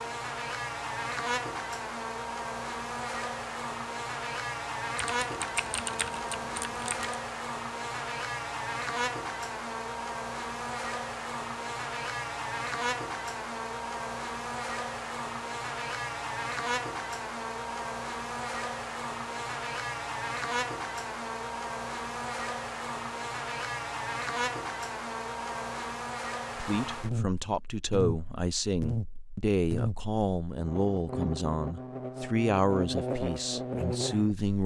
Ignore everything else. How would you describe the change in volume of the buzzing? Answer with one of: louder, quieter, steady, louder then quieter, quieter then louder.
steady.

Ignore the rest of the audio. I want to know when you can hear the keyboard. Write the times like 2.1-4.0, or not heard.
5.0-7.2.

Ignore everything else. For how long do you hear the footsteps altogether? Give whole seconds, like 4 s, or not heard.
not heard.